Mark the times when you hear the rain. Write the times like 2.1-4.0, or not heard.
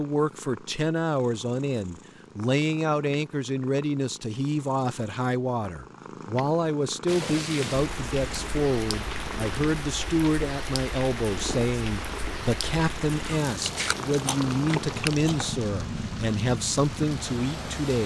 7.0-18.0.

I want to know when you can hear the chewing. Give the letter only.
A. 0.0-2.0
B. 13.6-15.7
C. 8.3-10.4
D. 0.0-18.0
B.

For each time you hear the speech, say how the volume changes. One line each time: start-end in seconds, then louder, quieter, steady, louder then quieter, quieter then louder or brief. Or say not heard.
0.0-18.0 steady.